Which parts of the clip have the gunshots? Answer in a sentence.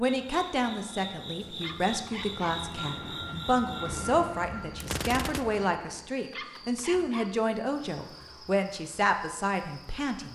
The gunshots can be heard from 4.8 to 5.7 s.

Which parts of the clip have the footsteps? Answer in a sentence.
You can't hear the footsteps here.